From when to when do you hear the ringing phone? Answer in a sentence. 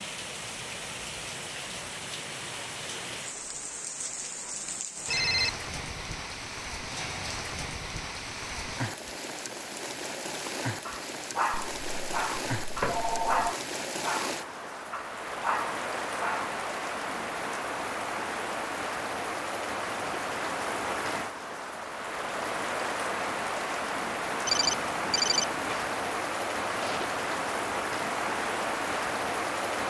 You can hear the ringing phone from 5.0 to 5.5 s, from 11.5 to 13.6 s and from 24.4 to 25.9 s.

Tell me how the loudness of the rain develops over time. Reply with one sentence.
The volume of the rain goes up.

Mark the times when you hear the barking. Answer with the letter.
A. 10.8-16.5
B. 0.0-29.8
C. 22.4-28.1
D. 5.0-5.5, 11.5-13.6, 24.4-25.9
A.